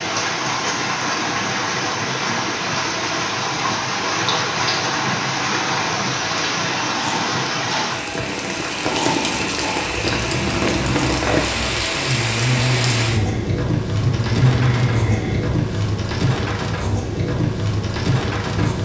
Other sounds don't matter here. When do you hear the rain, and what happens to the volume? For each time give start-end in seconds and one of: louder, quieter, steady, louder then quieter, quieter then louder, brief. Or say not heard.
0.0-18.7 steady.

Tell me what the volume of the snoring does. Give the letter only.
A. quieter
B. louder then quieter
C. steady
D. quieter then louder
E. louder
E.